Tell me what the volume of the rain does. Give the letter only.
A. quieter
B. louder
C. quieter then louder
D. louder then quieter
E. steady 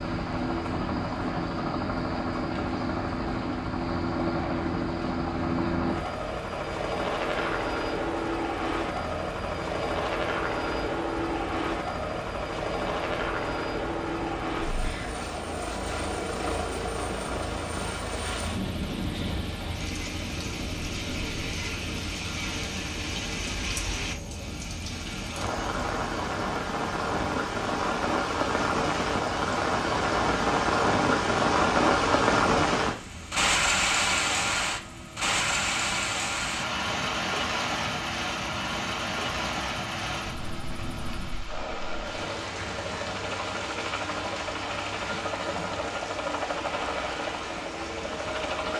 D.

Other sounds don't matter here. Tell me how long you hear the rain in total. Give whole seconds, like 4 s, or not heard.
49 s.